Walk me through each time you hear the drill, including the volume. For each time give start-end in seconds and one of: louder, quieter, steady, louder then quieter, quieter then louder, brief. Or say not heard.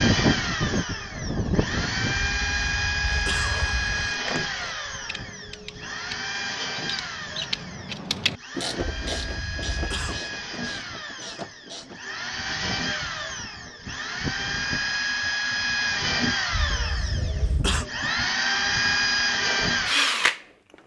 0.0-20.4 quieter then louder.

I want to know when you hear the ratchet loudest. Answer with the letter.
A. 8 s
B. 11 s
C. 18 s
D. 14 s
A.